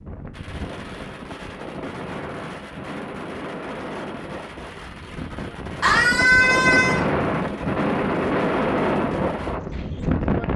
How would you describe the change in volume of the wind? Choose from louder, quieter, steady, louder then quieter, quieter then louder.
louder.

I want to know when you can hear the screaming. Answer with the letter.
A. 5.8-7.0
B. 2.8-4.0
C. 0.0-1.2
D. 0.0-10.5
A.